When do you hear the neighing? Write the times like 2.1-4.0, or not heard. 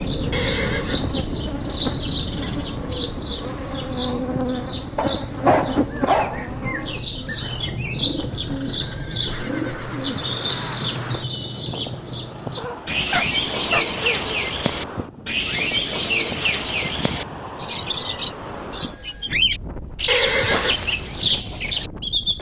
0.3-1.1, 8.8-10.8, 20.1-20.9.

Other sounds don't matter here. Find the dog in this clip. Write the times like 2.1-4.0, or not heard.
5.0-6.5, 12.6-14.3.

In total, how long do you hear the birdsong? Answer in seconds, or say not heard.
22 s.